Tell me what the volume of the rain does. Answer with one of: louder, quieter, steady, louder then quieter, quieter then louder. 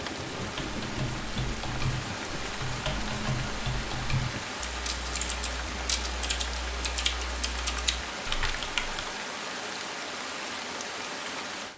steady.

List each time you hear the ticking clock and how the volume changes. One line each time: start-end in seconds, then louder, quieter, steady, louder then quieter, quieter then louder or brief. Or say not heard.
not heard.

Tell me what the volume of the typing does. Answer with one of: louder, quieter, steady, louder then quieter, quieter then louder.
steady.